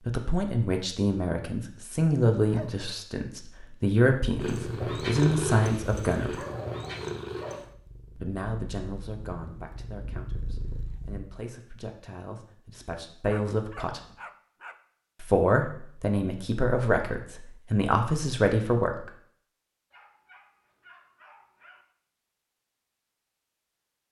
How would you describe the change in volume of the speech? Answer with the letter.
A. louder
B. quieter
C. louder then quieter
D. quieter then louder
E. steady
D.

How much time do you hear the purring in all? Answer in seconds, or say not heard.
7 s.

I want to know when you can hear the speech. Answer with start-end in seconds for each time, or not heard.
0.1-6.3, 8.2-14.0, 15.2-19.1.